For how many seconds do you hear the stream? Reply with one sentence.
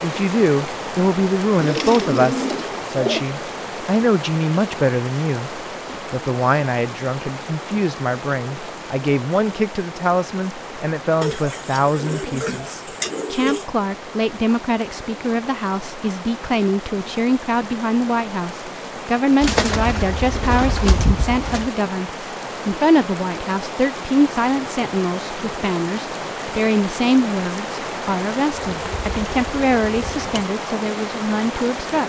The stream can be heard for 32 seconds in total.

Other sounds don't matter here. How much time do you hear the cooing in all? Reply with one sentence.
The cooing can be heard for 8 seconds in total.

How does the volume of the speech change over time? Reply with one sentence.
The loudness of the speech stays about the same.